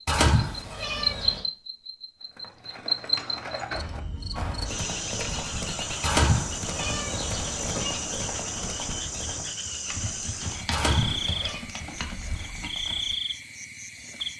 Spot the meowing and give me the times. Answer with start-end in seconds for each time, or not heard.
0.1-1.4, 6.0-8.0, 10.7-11.7.